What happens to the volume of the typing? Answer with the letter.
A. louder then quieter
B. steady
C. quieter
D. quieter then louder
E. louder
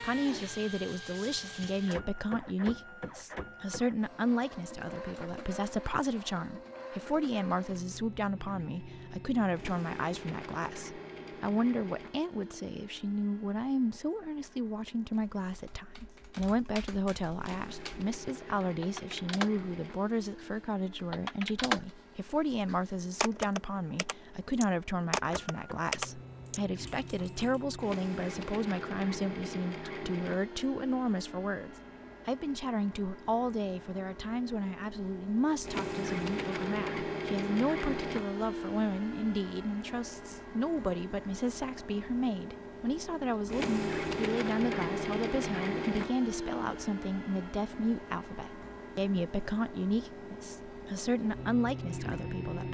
E.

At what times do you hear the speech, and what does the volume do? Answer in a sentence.
You can hear the speech from 0.0 to 52.6 s, at a steady volume.